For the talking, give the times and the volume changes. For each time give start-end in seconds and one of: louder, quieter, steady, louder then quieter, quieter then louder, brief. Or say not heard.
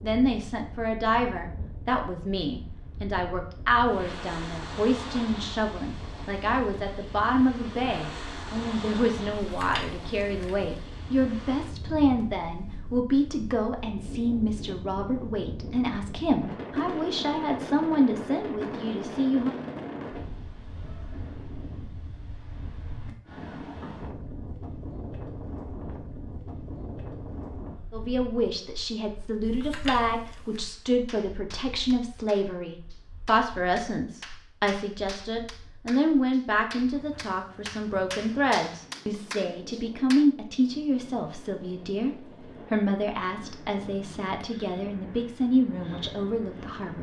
0.0-19.6 steady
27.9-46.9 steady.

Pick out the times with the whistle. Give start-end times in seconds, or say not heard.
not heard.